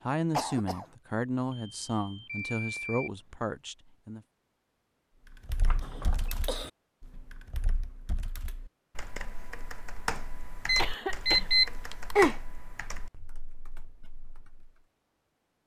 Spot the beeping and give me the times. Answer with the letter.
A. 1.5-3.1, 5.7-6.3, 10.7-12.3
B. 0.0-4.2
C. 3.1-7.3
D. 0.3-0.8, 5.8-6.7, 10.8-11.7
A.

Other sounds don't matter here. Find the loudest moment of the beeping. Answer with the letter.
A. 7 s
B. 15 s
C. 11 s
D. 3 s
C.